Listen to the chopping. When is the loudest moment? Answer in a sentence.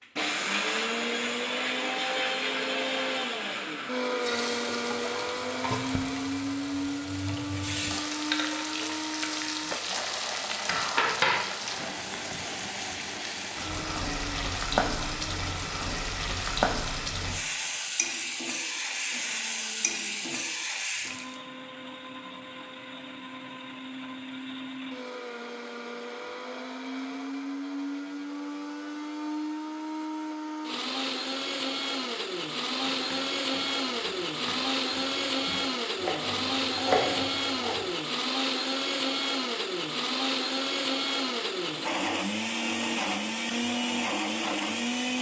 The volume of the chopping peaks at 37 seconds.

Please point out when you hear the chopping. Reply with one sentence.
The chopping can be heard from 32.8 to 38.0 s.